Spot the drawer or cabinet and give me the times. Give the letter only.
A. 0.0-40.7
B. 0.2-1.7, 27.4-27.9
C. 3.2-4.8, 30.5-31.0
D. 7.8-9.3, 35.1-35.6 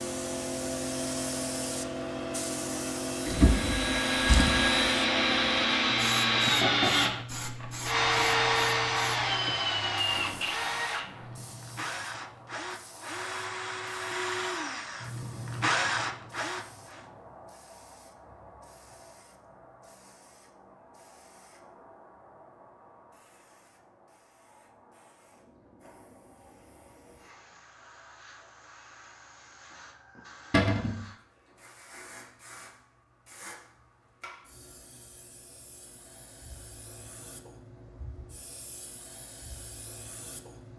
C.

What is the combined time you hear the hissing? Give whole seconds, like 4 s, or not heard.
41 s.